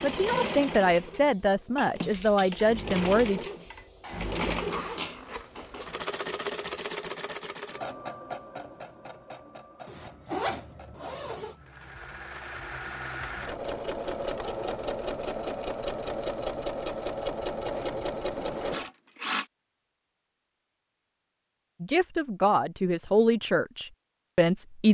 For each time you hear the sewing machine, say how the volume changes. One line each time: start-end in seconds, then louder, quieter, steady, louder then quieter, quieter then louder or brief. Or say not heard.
0.0-19.4 quieter then louder.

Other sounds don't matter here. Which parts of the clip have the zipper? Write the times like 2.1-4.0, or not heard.
4.0-6.0, 9.8-11.6, 17.7-18.9.